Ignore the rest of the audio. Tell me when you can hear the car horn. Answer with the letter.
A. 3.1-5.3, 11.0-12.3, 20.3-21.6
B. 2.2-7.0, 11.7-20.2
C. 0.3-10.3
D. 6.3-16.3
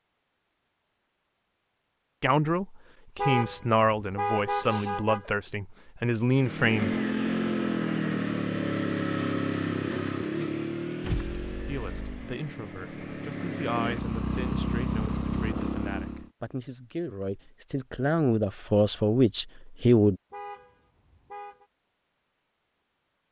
A.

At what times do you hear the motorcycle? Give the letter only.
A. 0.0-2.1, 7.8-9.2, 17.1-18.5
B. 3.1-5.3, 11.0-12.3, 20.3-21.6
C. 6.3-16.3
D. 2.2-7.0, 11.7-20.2
C.